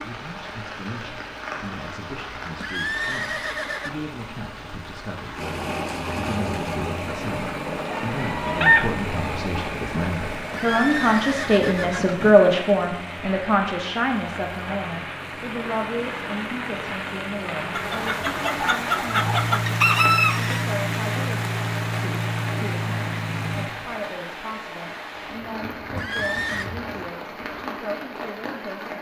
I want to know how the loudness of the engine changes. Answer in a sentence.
The loudness of the engine goes down, then up.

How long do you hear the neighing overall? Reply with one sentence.
You can hear the neighing for 4 seconds altogether.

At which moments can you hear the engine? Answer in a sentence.
The engine can be heard from 5.3 to 23.8 s.